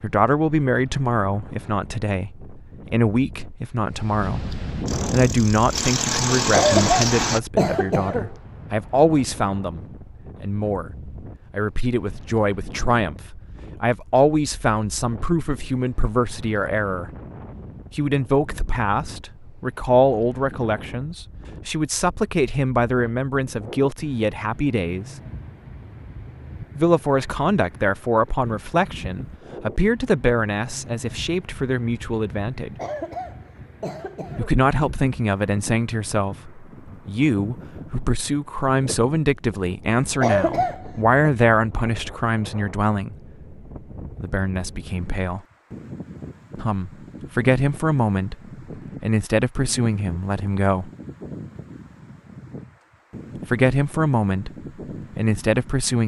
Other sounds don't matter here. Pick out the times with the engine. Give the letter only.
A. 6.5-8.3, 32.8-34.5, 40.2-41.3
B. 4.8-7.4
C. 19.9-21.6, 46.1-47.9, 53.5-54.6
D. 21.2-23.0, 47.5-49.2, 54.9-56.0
B.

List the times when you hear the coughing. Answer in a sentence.
You can hear the coughing from 6.5 to 8.3 s, from 32.8 to 34.5 s and from 40.2 to 41.3 s.